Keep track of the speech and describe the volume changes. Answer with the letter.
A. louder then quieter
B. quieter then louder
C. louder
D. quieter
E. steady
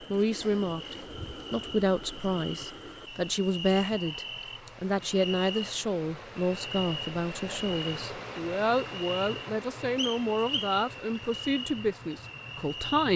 E.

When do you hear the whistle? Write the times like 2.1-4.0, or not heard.
9.9-10.8.